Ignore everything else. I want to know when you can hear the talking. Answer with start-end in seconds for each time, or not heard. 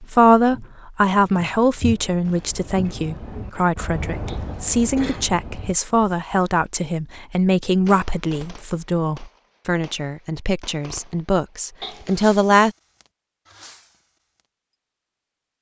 0.0-12.8.